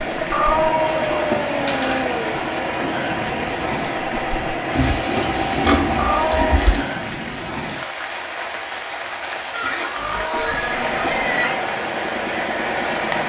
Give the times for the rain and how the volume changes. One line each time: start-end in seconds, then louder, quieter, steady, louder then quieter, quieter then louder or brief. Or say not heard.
0.0-13.2 steady.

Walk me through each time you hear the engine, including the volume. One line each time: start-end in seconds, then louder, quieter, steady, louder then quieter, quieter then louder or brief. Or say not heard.
0.0-6.8 steady
10.3-13.2 brief.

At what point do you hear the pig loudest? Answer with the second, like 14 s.
6 s.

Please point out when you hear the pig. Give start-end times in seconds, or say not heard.
0.9-2.1, 4.7-6.8, 9.5-11.6.